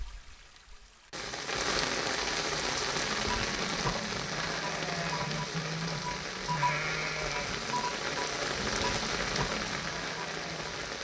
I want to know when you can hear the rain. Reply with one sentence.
The rain can be heard from 0.0 to 11.0 s.